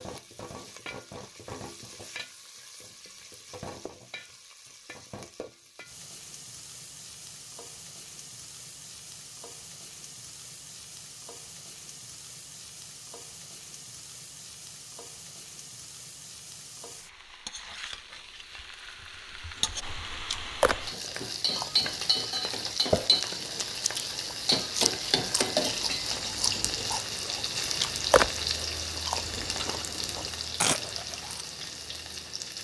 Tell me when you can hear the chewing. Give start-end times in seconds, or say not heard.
19.8-31.4.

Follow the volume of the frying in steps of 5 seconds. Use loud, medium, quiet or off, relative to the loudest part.
quiet, quiet, quiet, medium, loud, loud, medium.